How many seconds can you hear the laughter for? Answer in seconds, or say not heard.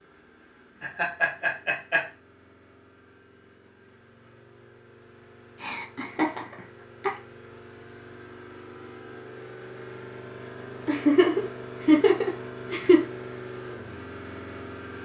5 s.